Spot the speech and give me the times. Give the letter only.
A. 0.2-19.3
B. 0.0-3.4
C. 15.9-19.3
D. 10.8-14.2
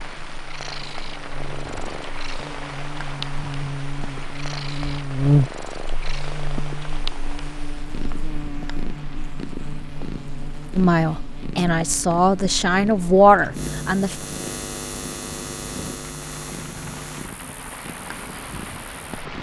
D.